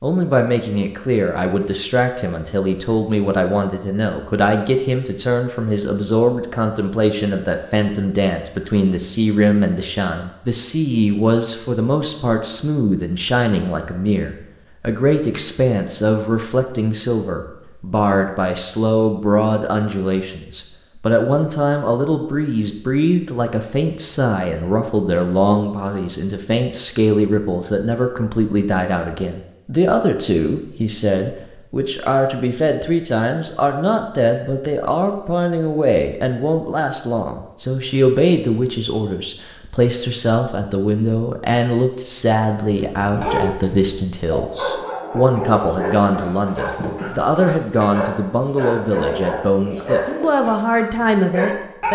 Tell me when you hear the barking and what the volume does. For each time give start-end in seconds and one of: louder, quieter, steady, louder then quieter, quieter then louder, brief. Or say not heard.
42.8-51.9 steady.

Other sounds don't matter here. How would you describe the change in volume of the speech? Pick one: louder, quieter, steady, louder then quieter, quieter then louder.
steady.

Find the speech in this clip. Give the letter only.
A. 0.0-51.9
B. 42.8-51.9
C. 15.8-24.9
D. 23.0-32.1
A.